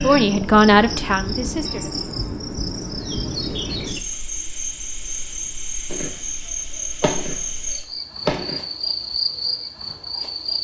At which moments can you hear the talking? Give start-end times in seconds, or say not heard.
0.0-2.0.